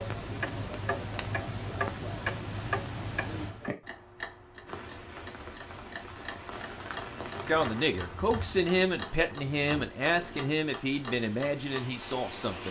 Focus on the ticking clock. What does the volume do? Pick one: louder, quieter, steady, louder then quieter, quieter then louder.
quieter.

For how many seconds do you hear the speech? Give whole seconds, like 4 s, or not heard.
5 s.